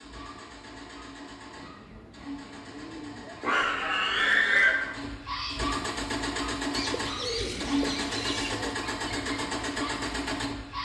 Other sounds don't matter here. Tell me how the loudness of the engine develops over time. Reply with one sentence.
The volume of the engine goes up.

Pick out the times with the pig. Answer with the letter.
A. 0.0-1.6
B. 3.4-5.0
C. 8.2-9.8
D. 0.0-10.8
B.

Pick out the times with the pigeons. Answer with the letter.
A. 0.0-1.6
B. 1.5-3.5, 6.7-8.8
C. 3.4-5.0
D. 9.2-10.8
B.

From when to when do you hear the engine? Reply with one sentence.
You can hear the engine from 0.0 to 10.8 s.